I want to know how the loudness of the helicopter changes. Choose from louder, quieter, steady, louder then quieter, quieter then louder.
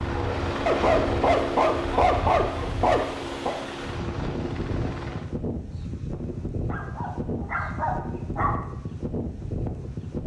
quieter.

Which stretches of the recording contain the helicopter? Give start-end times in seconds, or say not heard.
0.0-5.3.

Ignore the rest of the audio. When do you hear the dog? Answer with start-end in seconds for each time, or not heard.
0.7-3.5, 6.7-8.6.